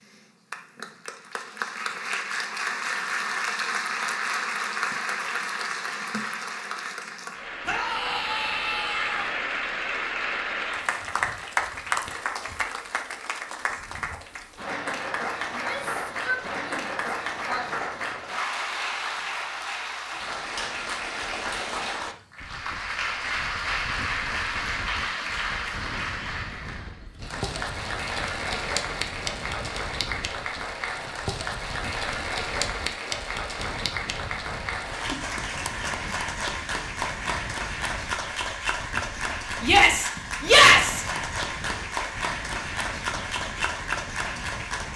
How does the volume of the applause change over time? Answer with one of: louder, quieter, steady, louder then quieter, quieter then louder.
steady.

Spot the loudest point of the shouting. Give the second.
41 s.